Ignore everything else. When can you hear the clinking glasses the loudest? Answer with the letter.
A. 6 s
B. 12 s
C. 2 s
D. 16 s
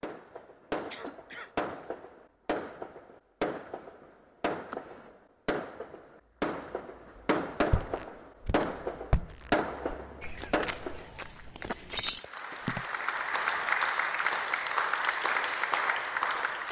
B.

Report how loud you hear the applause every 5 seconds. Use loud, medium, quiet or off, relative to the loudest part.
off, off, loud, loud.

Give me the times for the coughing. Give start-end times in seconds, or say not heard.
0.8-1.6.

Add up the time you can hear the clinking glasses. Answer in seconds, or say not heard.
2 s.